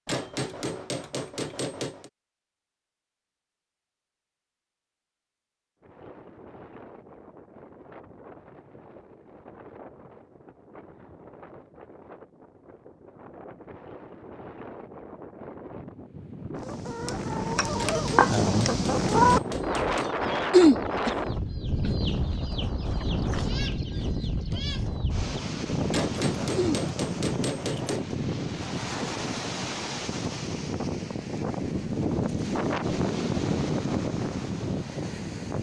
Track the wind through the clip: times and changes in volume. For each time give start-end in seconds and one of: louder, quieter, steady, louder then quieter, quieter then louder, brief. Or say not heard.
5.8-35.5 louder.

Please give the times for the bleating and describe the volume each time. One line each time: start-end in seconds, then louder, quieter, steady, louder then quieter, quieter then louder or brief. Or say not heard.
not heard.